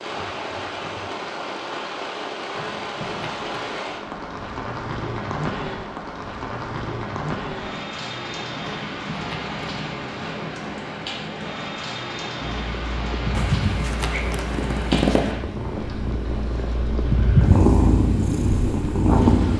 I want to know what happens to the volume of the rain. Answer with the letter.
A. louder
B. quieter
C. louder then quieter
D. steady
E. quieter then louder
B.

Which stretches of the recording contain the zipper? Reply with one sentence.
The zipper can be heard from 2.5 to 3.8 s, from 8.8 to 9.6 s and from 13.3 to 15.3 s.